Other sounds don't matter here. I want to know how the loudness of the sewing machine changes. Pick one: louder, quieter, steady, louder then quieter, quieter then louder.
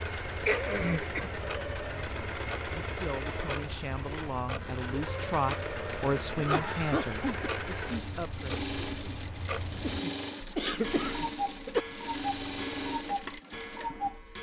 steady.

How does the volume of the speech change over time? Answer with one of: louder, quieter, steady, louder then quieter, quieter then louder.
louder then quieter.